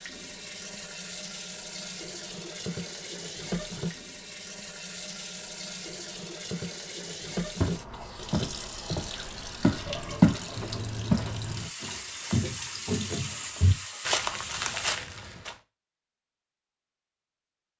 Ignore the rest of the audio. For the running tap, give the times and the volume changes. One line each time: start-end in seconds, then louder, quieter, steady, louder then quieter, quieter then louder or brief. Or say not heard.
0.0-15.0 steady.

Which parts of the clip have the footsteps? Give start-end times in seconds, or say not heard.
7.6-10.4, 11.1-15.6.